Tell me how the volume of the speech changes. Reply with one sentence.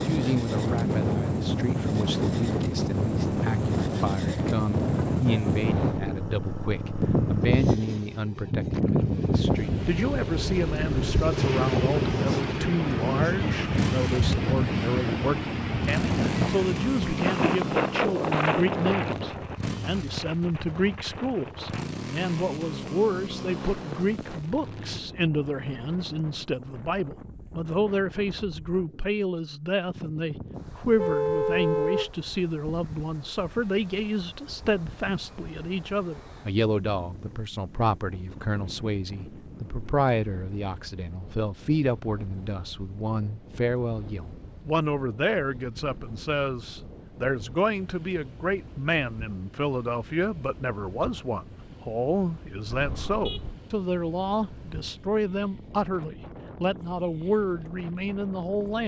The volume of the speech stays about the same.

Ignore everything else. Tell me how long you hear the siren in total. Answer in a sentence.
The siren can't be heard in this clip.